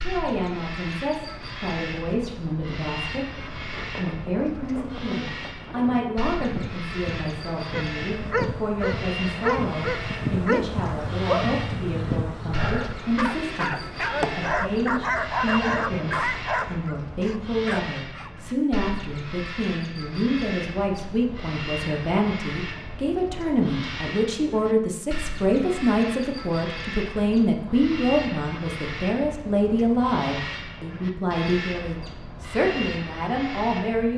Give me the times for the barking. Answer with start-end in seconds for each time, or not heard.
7.7-18.3.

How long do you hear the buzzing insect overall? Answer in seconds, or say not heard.
13 s.